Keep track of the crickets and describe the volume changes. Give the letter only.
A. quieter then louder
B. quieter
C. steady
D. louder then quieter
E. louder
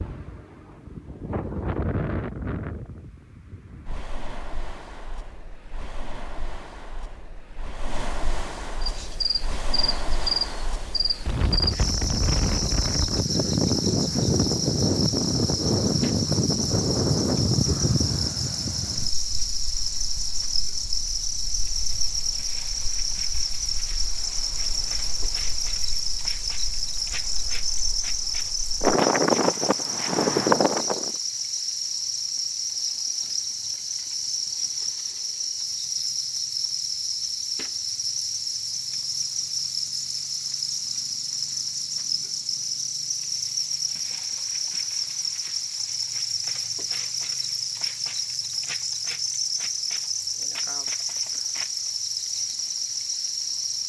C.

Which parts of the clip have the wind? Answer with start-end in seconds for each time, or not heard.
0.0-31.1.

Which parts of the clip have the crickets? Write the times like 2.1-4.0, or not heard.
8.8-53.8.